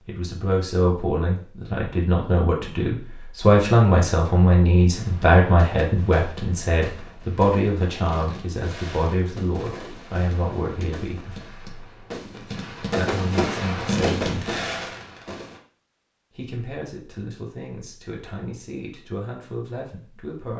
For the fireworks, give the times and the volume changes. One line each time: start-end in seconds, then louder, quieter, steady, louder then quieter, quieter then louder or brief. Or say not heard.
4.9-15.6 louder.